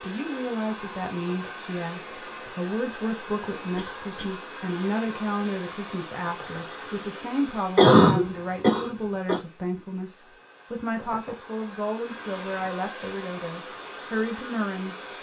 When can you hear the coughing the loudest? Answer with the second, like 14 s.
8 s.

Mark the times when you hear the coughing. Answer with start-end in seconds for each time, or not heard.
3.8-4.4, 7.8-9.4.